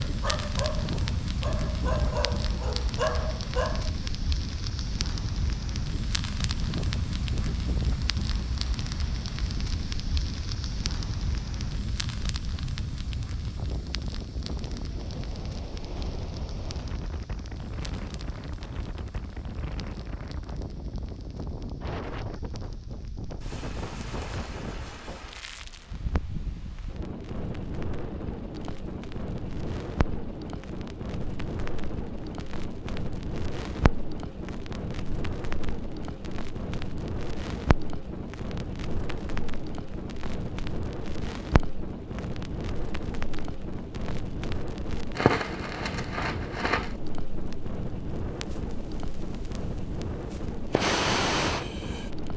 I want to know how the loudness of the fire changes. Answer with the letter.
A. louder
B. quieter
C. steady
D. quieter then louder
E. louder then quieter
D.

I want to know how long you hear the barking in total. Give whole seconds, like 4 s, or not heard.
4 s.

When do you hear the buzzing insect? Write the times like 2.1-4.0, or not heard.
not heard.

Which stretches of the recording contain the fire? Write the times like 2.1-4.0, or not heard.
0.0-52.3.